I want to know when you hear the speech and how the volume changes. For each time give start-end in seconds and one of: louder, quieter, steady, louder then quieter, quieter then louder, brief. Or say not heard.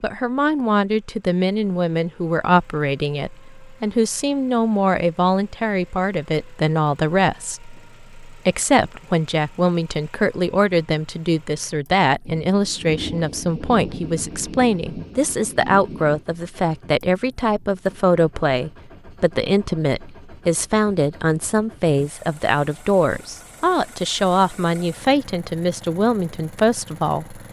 0.0-27.4 steady.